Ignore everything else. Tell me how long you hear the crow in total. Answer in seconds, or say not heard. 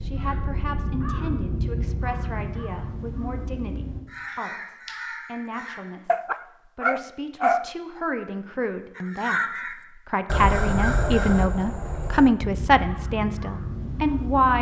11 s.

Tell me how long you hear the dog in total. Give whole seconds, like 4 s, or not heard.
2 s.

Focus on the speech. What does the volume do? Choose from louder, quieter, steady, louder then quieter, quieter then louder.
louder.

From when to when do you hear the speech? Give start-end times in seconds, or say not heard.
0.0-9.4, 10.1-14.5.